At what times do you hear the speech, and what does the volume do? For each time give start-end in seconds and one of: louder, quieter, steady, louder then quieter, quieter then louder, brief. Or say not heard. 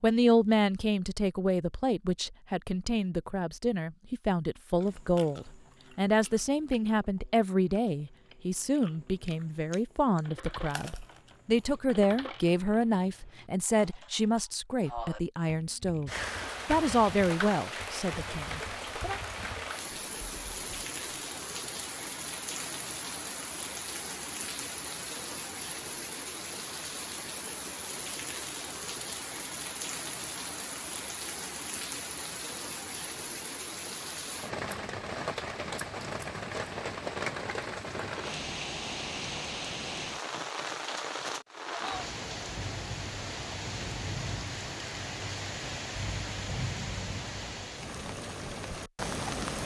0.0-19.2 steady.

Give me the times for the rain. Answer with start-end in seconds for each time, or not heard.
16.1-49.6.